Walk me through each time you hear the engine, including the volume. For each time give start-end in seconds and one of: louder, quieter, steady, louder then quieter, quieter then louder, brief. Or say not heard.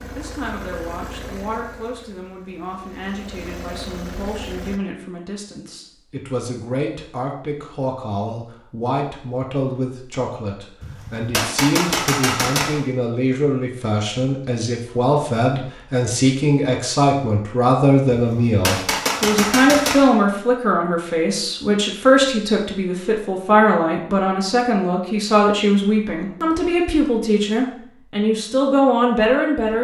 0.0-4.8 quieter then louder.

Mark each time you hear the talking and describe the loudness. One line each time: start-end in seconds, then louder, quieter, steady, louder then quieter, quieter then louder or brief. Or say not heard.
0.0-29.7 louder.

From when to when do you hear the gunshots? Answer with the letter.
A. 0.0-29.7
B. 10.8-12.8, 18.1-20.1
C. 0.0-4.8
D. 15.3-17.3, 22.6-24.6
B.